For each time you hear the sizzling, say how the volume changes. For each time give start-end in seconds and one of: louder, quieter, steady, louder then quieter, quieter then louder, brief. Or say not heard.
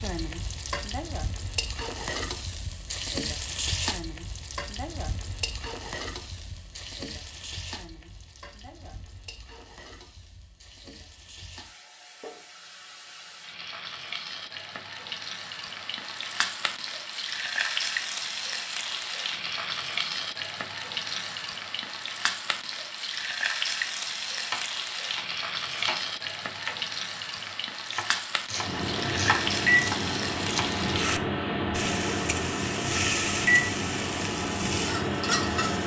0.0-35.8 quieter then louder.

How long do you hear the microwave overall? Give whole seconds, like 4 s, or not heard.
7 s.